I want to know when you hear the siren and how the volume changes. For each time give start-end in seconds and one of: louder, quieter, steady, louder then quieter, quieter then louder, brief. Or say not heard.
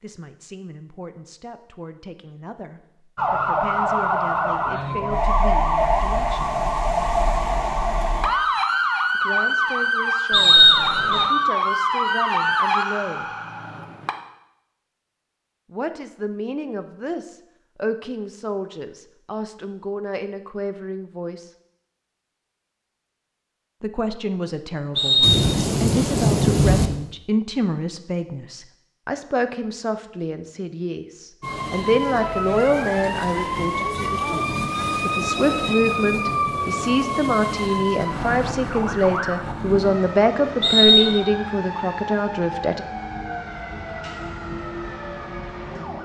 3.1-14.2 steady
31.4-46.0 quieter.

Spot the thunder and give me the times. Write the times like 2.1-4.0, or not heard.
25.2-26.9.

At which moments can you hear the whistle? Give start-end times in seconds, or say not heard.
10.3-11.3, 24.9-25.4, 40.6-41.2.